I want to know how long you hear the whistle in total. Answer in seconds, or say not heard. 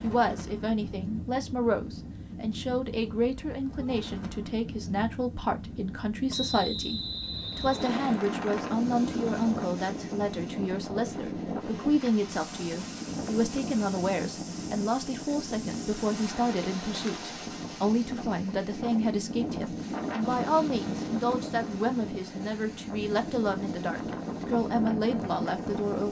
2 s.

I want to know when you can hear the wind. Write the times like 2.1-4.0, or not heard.
0.0-26.0.